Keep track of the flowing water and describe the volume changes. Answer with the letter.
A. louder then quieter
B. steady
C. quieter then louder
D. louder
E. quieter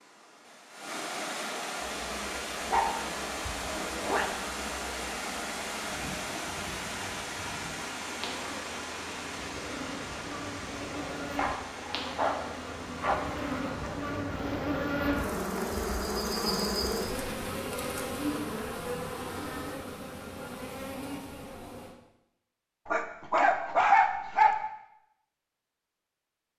E.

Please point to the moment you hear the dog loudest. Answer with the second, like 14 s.
24 s.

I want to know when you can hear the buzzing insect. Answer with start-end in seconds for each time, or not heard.
1.8-21.9.